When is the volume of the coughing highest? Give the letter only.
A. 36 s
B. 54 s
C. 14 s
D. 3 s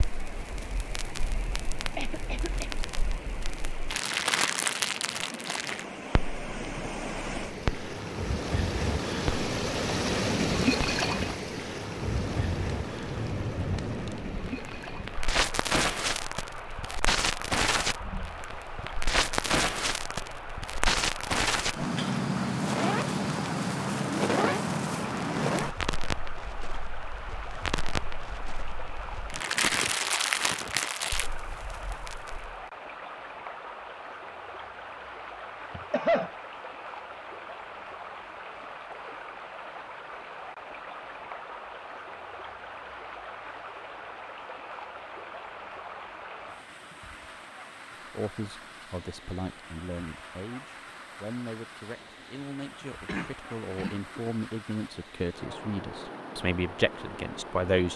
A.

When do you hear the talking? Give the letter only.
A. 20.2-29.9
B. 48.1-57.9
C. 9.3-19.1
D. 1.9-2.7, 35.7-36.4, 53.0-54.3
B.